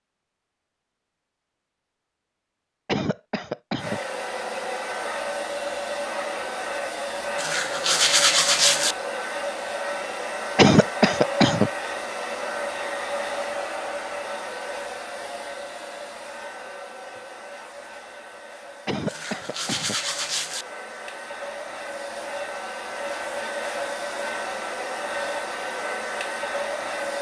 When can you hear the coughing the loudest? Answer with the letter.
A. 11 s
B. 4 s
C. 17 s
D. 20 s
A.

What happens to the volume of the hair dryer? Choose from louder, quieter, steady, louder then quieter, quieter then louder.
quieter then louder.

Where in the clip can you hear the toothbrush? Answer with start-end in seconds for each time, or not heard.
7.3-8.9, 19.1-20.6.